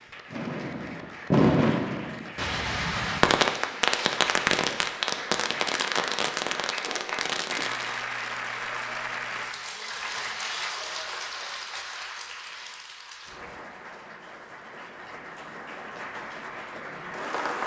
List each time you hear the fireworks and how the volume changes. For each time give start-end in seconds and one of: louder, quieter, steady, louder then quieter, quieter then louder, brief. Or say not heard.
0.3-8.1 quieter.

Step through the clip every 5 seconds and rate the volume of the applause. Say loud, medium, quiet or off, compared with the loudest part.
medium, loud, loud, loud.